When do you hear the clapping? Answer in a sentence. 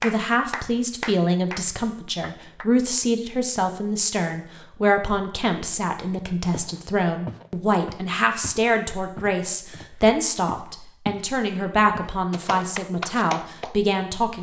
You can hear the clapping from 0.0 to 2.7 s and from 12.4 to 14.3 s.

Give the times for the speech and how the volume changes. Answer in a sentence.
You can hear the speech from 0.0 to 14.3 s, at a steady volume.